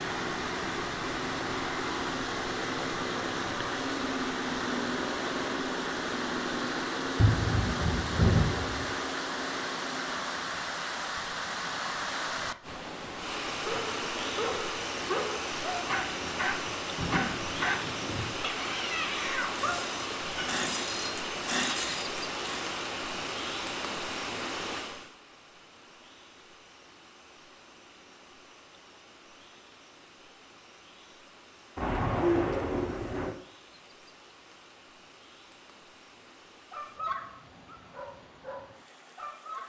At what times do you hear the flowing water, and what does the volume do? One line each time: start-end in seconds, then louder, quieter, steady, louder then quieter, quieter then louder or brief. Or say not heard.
0.0-39.6 quieter.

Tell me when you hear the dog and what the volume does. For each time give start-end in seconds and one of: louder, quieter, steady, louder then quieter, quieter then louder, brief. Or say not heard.
13.6-20.6 steady
36.7-39.6 brief.